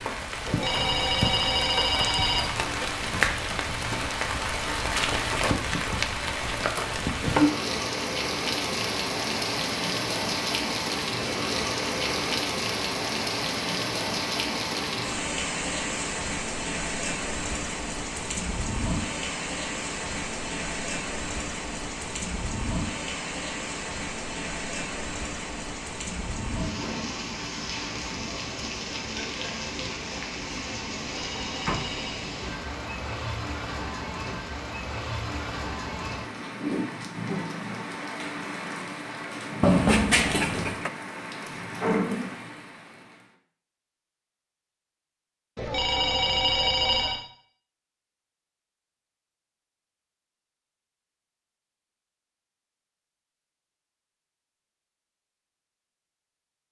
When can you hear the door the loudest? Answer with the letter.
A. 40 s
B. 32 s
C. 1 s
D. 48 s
A.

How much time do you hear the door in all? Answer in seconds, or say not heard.
3 s.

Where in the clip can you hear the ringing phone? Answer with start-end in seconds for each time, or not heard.
0.5-2.5, 31.1-32.3, 45.5-47.2.